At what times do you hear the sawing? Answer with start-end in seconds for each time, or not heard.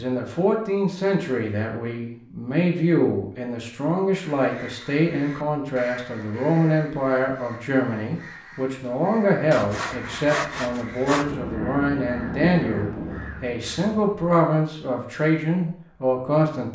9.5-11.3.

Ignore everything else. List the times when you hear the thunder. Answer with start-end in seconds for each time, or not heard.
11.2-13.3.